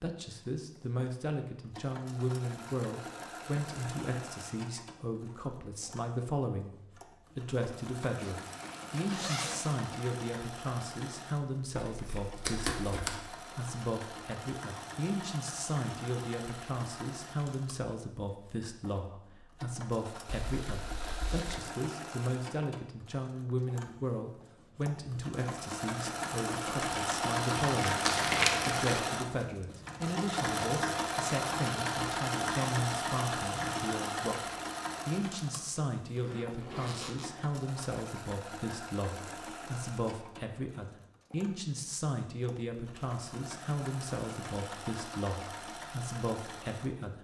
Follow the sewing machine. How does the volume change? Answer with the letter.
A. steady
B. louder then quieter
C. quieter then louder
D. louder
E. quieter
B.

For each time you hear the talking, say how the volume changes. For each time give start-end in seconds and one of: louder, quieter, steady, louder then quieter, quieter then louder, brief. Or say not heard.
0.0-6.8 steady
7.3-28.1 steady
28.6-47.1 steady.